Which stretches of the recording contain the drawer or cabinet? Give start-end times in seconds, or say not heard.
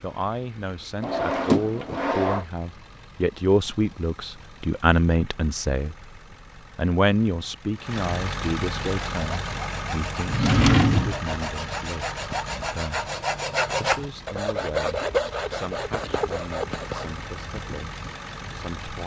1.0-2.5, 10.2-11.2.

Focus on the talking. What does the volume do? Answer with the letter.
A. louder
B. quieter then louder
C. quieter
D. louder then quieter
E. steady
D.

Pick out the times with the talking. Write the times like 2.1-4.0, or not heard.
0.0-6.0, 6.8-13.1, 13.8-19.0.